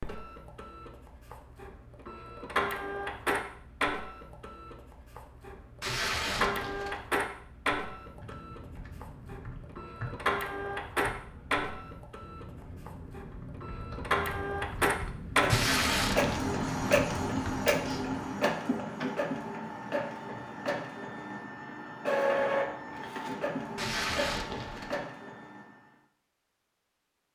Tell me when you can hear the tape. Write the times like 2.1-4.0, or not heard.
5.8-7.0, 15.4-16.4, 23.8-24.9.